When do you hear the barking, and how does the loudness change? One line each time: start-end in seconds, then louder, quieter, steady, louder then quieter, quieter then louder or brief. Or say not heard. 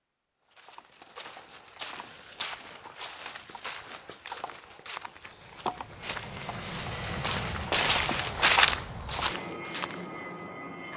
not heard.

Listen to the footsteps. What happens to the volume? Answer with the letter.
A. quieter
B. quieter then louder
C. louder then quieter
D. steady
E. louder
E.